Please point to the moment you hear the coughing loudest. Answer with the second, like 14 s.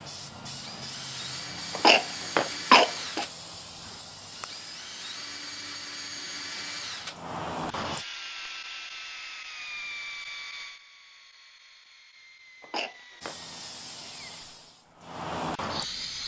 3 s.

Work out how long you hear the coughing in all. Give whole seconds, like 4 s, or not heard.
2 s.